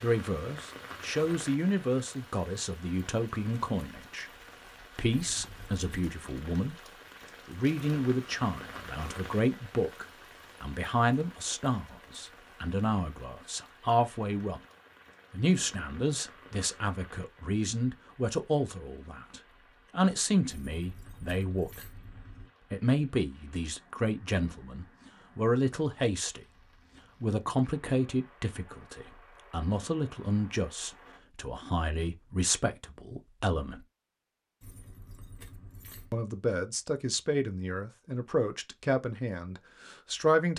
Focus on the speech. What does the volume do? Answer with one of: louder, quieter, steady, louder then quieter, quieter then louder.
steady.